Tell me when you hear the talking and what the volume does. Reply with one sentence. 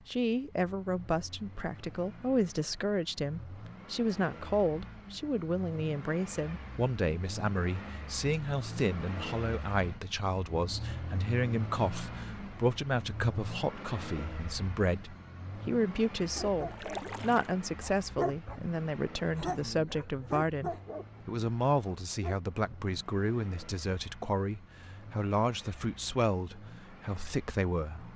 You can hear the talking from 0.1 to 28.1 s, at a steady volume.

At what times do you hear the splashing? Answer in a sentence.
The splashing can be heard from 16.7 to 17.6 s.